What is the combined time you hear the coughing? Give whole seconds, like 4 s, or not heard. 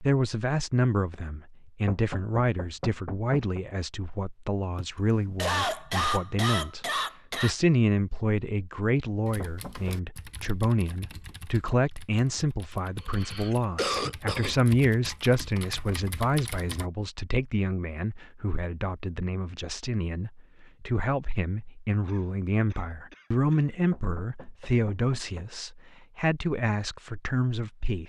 6 s.